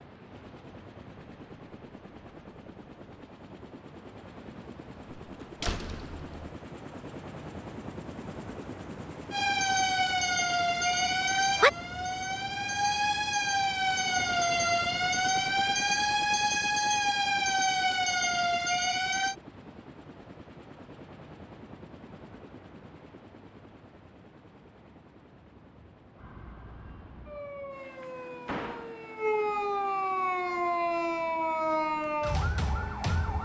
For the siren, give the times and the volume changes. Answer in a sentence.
The siren can be heard from 9.3 to 19.4 s, at a steady volume; and from 26.1 to 33.4 s, getting louder.